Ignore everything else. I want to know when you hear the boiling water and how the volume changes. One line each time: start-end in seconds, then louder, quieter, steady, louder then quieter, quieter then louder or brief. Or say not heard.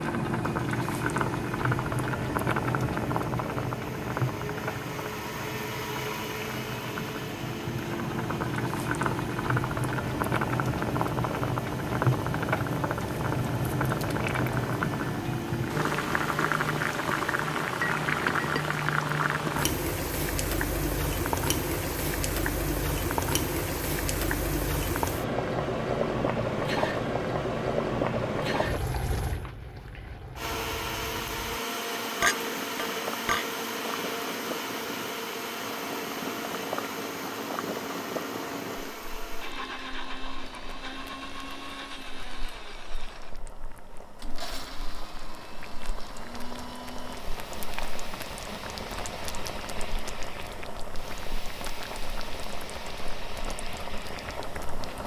0.0-55.0 quieter.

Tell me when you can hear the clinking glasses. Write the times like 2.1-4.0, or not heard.
17.8-18.6, 32.2-33.5.